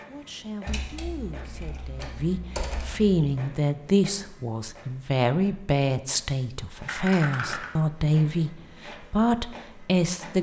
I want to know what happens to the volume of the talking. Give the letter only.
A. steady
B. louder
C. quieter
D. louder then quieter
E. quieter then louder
B.